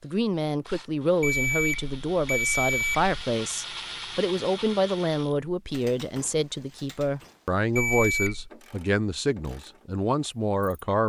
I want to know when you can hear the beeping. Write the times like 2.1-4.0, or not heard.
1.2-3.1, 7.8-8.5.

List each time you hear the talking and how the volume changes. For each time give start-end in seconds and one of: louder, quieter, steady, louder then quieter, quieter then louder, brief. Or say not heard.
0.0-11.0 steady.